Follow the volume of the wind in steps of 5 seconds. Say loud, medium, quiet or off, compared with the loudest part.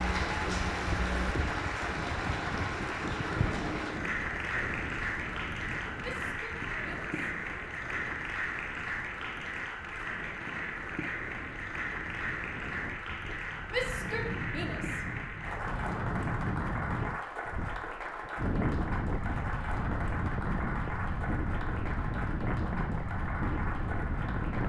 loud, medium, medium, loud, loud.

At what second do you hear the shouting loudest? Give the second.
14 s.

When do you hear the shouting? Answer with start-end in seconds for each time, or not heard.
6.0-7.1, 13.7-15.1.